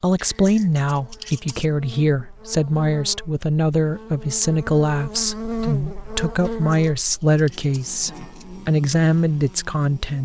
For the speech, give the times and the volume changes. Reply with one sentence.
You can hear the speech from 0.0 to 10.2 s, at a steady volume.